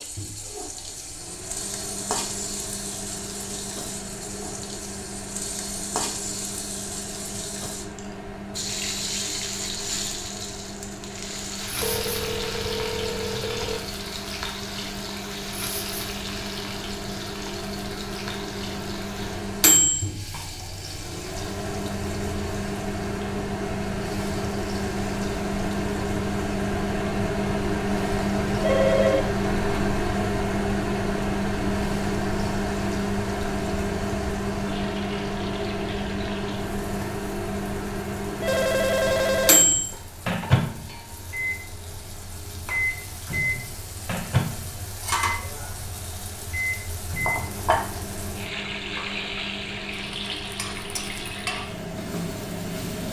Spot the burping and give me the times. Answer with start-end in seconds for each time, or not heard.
not heard.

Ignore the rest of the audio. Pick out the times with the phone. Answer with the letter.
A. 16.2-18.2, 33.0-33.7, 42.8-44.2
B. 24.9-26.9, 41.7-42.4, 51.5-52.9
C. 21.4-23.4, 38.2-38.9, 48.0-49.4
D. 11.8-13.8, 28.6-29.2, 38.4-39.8
D.